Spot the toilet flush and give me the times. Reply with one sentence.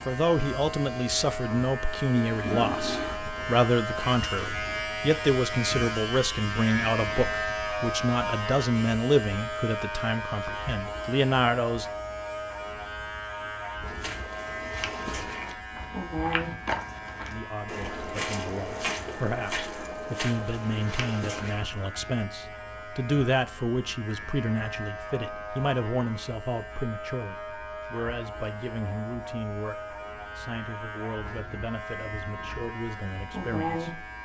The toilet flush can be heard from 2.2 to 3.2 s.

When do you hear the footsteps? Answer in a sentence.
The footsteps can be heard from 13.8 to 21.7 s.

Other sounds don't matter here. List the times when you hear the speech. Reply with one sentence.
The speech can be heard from 0.1 to 11.8 s and from 17.2 to 34.0 s.